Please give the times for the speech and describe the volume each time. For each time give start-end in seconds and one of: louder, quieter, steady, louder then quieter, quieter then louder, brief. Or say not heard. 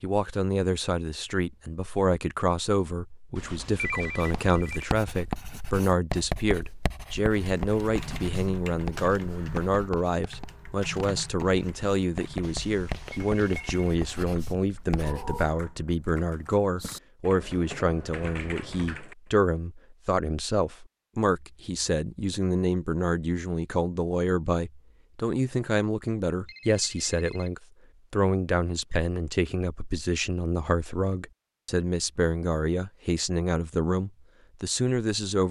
0.0-35.4 steady.